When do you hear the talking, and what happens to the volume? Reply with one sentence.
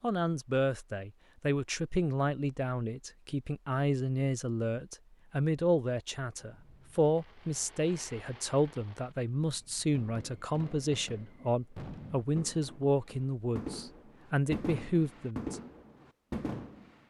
The talking can be heard from 0.0 to 15.6 s, at a steady volume.